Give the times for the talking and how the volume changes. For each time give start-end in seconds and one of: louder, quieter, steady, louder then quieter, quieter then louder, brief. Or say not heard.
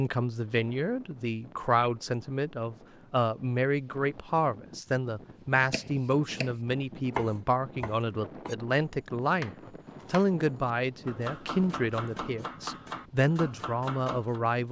0.0-14.6 steady.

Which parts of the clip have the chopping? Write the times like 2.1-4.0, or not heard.
5.7-14.4.